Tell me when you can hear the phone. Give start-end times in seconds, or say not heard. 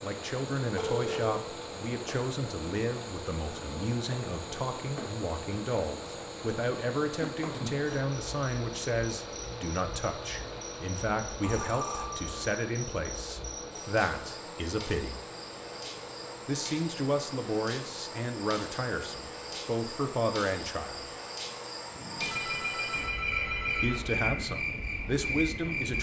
0.8-1.4, 11.4-12.5, 22.1-24.1.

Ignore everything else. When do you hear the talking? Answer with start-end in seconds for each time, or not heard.
0.0-15.2, 16.4-21.1, 23.8-25.9.